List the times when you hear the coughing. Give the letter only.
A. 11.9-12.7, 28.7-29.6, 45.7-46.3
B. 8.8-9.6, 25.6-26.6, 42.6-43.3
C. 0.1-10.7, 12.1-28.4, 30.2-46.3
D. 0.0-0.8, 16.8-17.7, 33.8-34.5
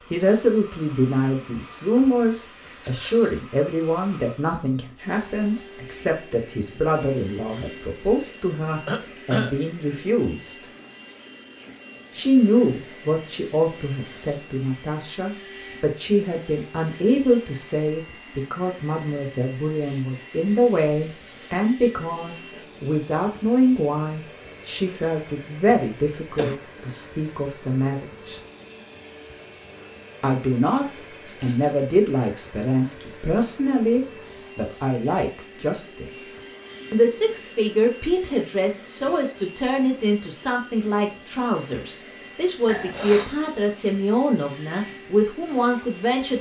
B.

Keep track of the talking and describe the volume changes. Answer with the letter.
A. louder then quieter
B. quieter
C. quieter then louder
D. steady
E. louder
D.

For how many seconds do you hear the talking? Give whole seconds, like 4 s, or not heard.
43 s.